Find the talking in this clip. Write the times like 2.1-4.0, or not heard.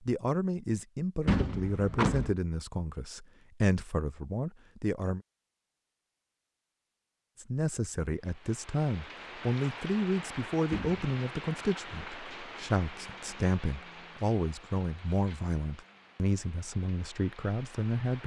0.0-5.2, 7.4-18.2.